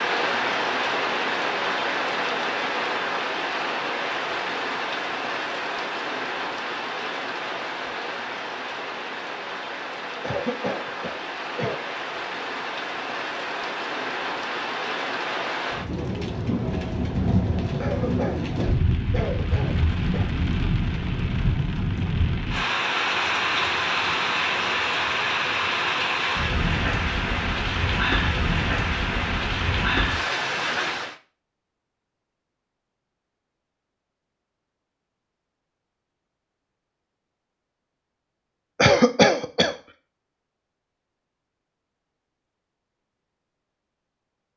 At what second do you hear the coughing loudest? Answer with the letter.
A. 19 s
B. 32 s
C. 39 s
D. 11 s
C.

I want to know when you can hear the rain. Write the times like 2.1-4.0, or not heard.
0.0-31.1.